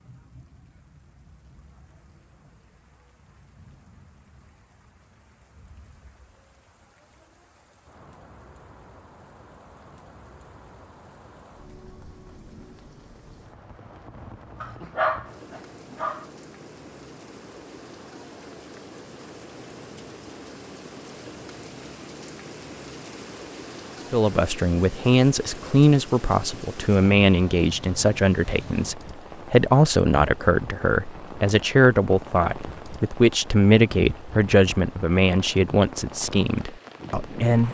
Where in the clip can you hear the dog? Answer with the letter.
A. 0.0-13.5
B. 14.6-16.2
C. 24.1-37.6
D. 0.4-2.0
B.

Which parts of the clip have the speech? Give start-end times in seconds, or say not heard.
24.1-37.6.